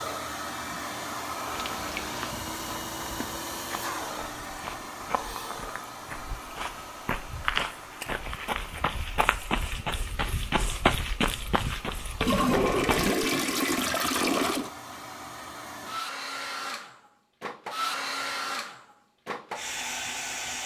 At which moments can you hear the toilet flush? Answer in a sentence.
The toilet flush can be heard from 1.6 to 2.3 s and from 12.2 to 14.7 s.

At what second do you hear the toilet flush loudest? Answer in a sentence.
The volume of the toilet flush peaks at 13 seconds.